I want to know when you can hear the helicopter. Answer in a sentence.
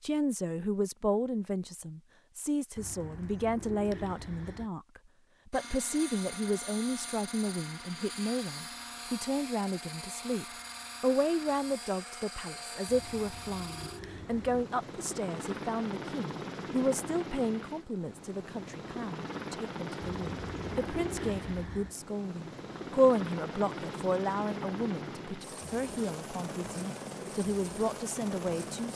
You can hear the helicopter from 5.5 to 28.9 s.